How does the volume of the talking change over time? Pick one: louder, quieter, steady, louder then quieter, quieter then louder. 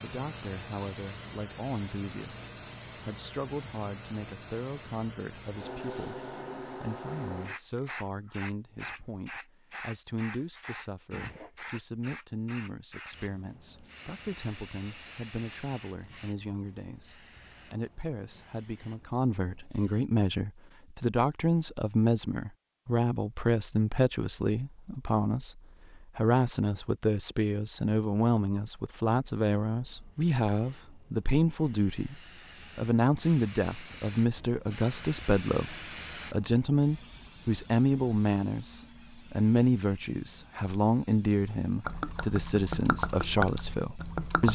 louder.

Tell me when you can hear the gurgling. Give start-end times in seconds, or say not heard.
41.3-44.4.